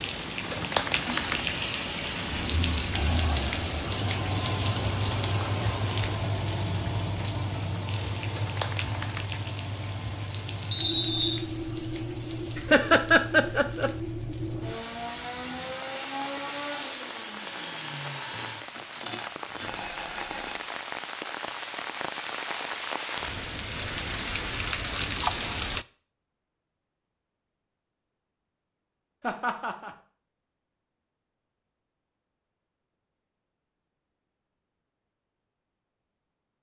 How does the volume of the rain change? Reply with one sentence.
The volume of the rain goes down, then up.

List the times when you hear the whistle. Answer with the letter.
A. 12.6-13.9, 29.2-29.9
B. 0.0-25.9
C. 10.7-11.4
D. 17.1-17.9
C.